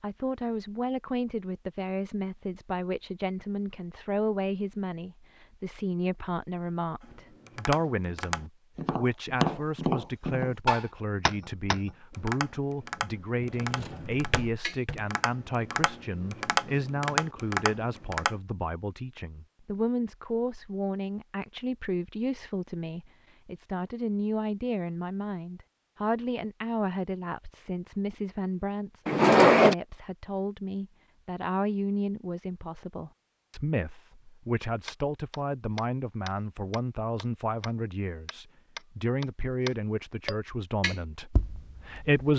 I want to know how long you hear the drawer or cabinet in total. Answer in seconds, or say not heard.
2 s.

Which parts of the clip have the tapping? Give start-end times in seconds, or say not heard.
7.0-18.4, 34.9-42.3.